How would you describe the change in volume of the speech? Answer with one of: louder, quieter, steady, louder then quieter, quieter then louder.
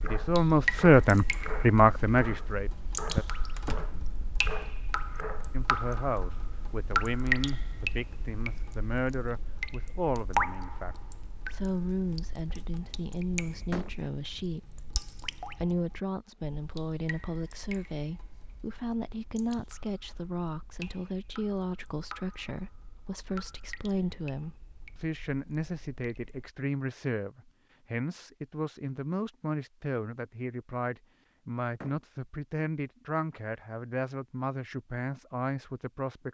quieter.